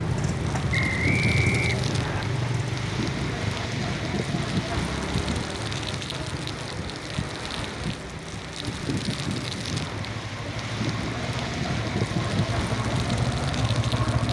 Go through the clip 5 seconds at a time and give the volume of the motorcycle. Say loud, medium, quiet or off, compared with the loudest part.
loud, medium, loud.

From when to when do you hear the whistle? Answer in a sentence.
The whistle can be heard from 0.7 to 2.2 s.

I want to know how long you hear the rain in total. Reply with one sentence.
The rain can be heard for 14 seconds in total.